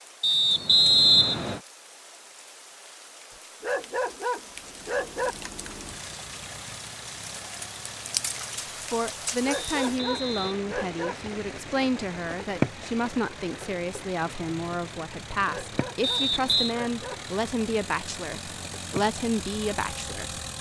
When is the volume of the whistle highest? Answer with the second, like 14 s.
1 s.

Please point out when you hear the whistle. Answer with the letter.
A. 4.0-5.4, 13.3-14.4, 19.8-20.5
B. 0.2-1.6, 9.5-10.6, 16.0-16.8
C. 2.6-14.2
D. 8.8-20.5
B.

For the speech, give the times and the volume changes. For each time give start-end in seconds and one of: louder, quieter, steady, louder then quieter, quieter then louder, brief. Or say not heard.
8.8-20.5 steady.